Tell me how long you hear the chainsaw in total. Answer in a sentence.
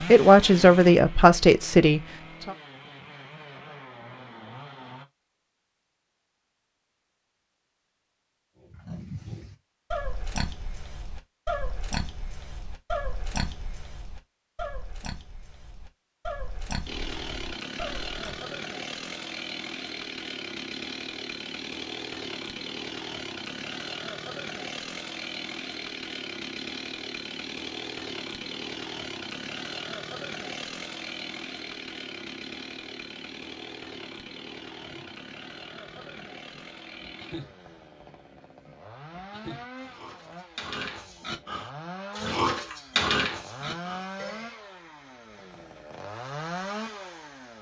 You can hear the chainsaw for 36 seconds altogether.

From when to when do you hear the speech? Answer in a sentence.
The speech can be heard from 0.0 to 2.5 s.